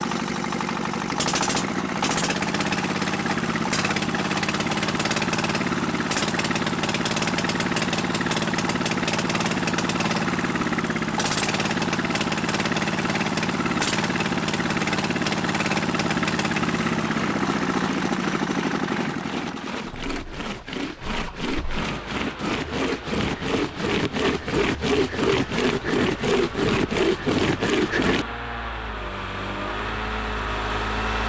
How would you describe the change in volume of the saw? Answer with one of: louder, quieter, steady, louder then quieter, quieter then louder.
louder.